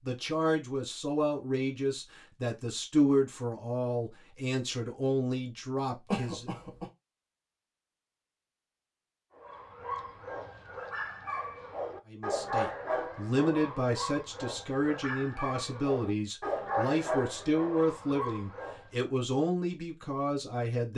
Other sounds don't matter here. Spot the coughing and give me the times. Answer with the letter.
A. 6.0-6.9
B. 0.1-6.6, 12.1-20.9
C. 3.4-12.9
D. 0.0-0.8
A.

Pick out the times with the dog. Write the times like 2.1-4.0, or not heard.
9.3-18.9.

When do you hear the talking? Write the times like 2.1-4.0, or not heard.
0.1-6.6, 12.1-20.9.